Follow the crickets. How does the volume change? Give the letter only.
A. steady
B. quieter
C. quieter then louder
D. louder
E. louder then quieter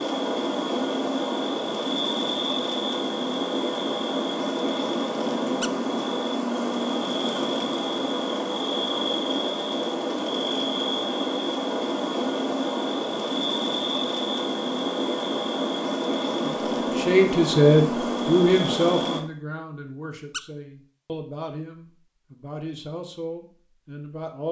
A.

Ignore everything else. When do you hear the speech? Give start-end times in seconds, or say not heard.
16.4-24.4.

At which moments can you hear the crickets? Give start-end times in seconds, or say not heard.
0.0-19.2.